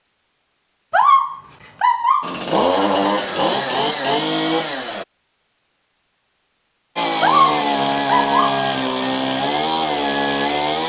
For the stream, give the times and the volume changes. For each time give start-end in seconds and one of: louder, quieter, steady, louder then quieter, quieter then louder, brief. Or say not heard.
not heard.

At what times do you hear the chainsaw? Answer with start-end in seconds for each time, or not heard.
2.2-5.0, 7.0-10.8.